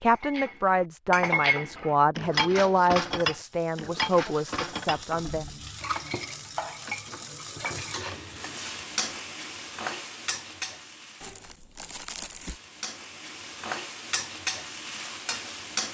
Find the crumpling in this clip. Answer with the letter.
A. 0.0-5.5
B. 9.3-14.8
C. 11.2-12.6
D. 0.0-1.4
C.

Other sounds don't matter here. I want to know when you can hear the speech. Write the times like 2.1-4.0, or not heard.
0.0-5.5.